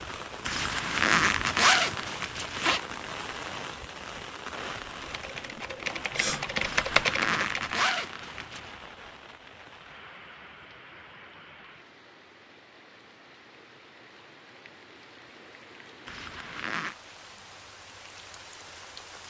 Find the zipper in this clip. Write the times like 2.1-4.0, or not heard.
0.5-2.8, 6.6-8.8, 16.1-16.9.